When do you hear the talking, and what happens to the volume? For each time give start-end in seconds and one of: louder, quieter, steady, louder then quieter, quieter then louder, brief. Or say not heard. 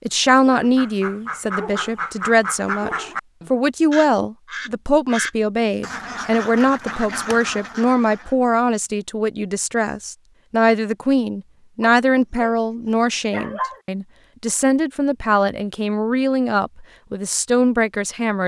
0.1-18.4 steady.